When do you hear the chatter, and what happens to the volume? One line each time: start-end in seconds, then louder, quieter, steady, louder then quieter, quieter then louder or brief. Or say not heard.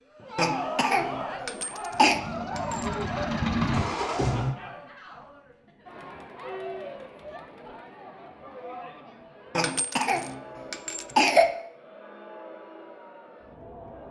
0.1-14.0 quieter.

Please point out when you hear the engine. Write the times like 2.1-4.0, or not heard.
1.9-4.5.